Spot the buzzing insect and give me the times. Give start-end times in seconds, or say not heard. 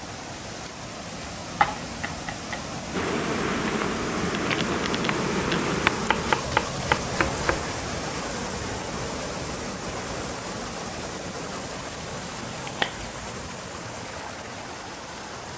2.9-6.3.